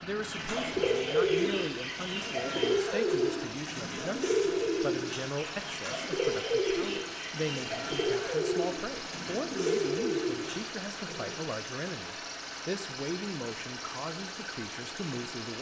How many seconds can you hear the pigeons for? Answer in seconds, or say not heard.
11 s.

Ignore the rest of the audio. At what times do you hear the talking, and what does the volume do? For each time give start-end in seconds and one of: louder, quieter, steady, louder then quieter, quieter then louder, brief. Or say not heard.
0.0-15.5 steady.